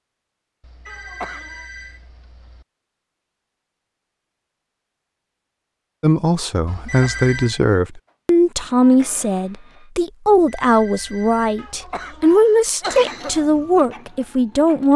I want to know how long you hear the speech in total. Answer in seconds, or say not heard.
9 s.